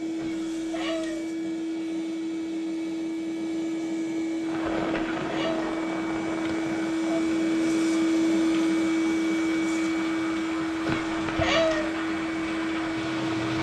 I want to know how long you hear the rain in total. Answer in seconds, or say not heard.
9 s.